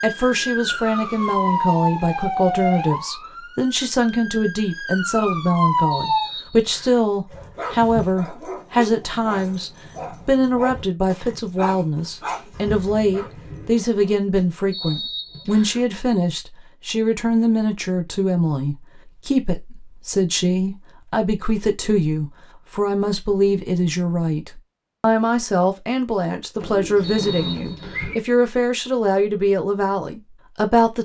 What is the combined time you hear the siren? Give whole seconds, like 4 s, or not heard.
6 s.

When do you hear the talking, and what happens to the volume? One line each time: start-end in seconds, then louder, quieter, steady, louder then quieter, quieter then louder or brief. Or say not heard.
0.0-31.0 steady.